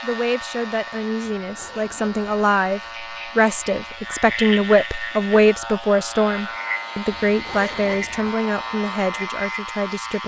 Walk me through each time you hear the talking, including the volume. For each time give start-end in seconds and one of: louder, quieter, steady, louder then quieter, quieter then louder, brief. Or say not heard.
0.0-10.2 louder then quieter.